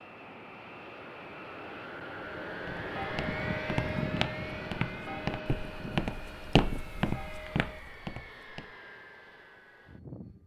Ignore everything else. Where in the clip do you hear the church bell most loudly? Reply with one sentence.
The volume of the church bell peaks at 4 seconds.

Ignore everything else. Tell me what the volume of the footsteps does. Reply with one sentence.
The loudness of the footsteps goes up, then down.